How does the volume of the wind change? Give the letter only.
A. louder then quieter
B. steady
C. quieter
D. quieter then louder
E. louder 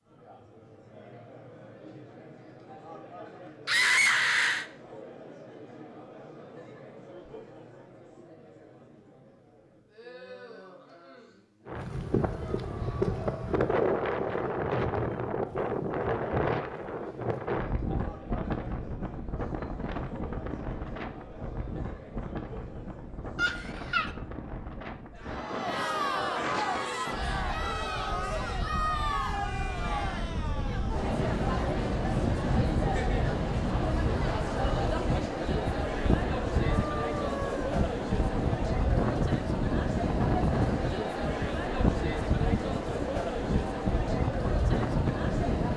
D.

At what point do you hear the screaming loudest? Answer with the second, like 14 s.
4 s.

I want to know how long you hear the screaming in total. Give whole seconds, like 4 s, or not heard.
3 s.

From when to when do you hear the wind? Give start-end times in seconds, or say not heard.
11.7-45.7.